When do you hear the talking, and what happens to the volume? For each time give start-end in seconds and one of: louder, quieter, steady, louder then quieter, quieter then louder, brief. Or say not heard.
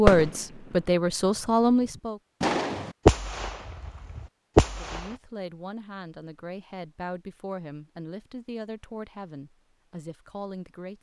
0.0-2.2 brief
4.8-10.9 steady.